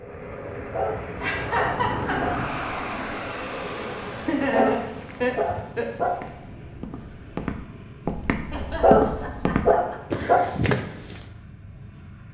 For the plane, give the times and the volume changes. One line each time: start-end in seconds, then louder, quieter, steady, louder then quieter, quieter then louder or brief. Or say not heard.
0.0-12.3 quieter.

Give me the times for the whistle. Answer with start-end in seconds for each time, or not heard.
not heard.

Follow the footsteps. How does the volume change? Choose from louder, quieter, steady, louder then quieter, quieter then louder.
louder.